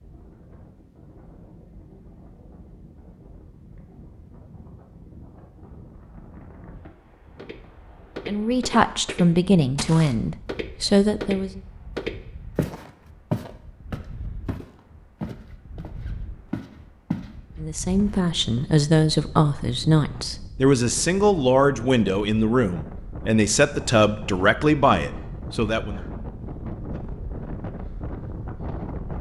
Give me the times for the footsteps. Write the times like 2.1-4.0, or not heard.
7.3-18.6.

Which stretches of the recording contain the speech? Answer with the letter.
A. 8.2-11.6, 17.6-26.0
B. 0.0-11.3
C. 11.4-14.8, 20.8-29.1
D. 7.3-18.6
A.